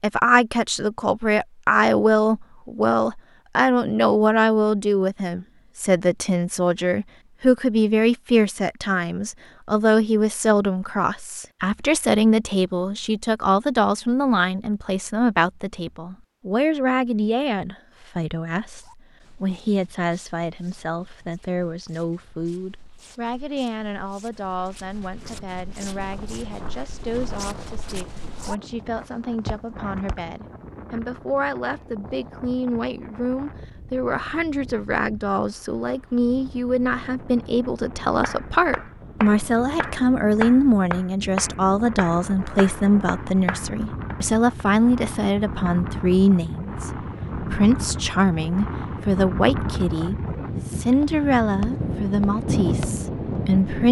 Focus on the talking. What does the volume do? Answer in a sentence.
The volume of the talking goes down, then up.